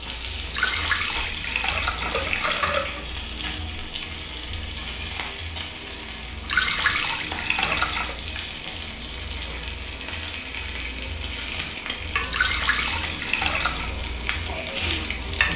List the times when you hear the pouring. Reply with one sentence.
You can hear the pouring from 0.5 to 3.0 s, from 6.5 to 8.2 s and from 12.3 to 13.9 s.